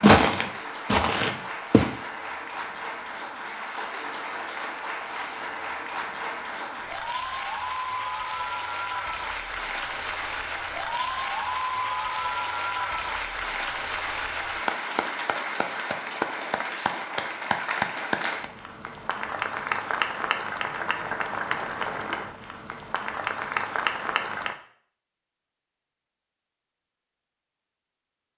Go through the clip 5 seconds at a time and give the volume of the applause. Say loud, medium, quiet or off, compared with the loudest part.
medium, loud, loud, loud, loud, off.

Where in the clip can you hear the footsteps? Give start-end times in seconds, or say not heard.
0.0-1.9.